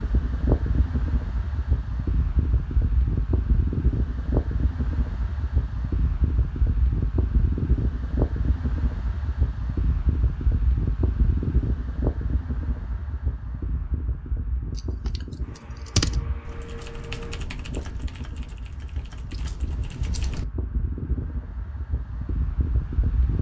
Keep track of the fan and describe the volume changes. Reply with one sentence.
The volume of the fan goes down.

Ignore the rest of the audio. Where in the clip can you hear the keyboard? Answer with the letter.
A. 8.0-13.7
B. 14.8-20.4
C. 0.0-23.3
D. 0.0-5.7
B.